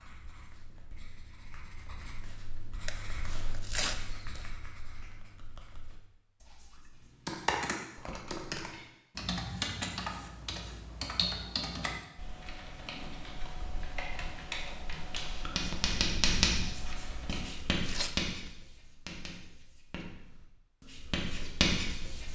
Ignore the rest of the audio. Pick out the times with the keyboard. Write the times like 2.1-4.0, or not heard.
7.0-17.6.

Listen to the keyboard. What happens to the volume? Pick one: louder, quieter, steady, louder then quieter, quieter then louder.
quieter.